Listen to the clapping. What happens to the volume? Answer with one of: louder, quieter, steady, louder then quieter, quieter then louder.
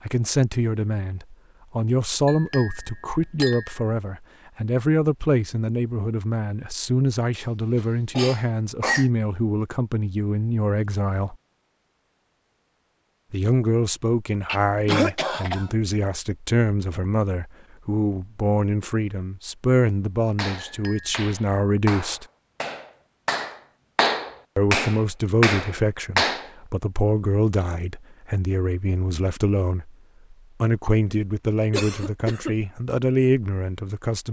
louder.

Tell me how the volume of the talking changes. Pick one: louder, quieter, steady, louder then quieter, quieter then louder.
steady.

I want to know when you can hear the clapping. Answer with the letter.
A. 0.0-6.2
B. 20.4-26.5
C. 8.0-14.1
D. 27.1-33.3
B.